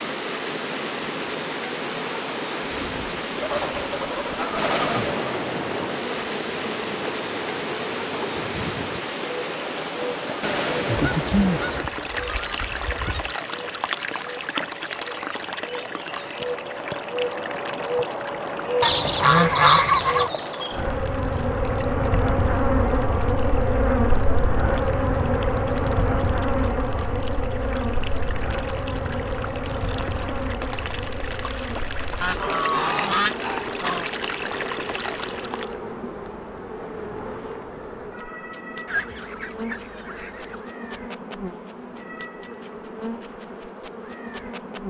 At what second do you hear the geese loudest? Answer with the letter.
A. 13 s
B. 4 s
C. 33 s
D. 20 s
D.